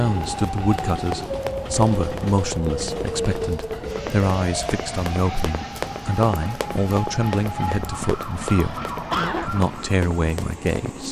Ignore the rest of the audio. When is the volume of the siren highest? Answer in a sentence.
The loudest moment of the siren is at 3 seconds.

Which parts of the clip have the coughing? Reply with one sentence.
The coughing can be heard from 8.0 to 9.5 s.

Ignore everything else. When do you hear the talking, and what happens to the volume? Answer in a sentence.
You can hear the talking from 0.0 to 11.0 s, at a steady volume.